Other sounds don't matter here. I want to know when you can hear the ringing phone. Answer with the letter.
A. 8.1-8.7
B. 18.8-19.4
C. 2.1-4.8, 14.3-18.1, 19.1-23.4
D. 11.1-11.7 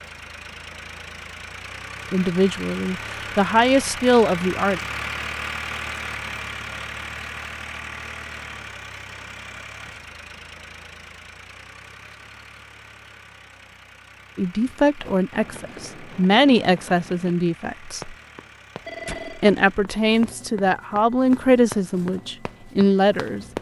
B.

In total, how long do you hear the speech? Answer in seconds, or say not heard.
11 s.